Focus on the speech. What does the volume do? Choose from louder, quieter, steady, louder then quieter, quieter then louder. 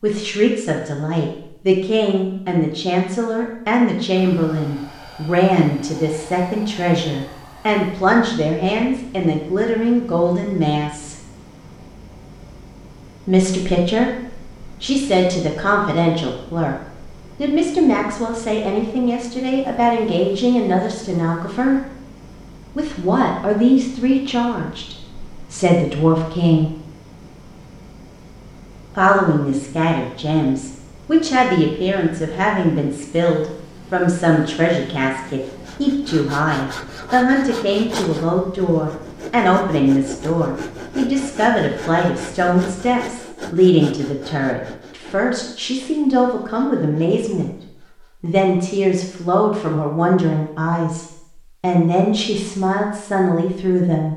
steady.